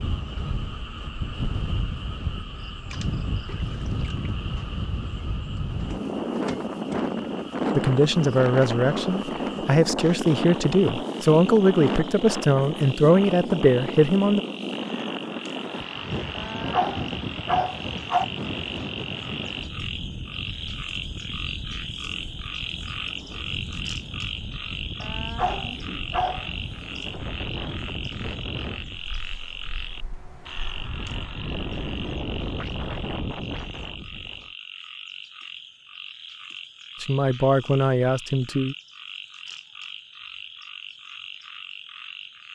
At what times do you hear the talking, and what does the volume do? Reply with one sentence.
The talking can be heard from 7.8 to 14.4 s, at a steady volume; and briefly from 37.0 to 38.8 s.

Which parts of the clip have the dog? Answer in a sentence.
You can hear the dog from 16.4 to 18.2 s and from 25.0 to 26.5 s.